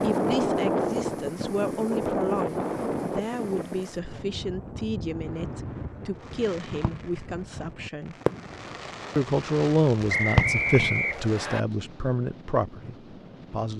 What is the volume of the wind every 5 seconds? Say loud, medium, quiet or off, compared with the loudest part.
loud, quiet, quiet.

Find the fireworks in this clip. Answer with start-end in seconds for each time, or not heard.
6.2-11.4.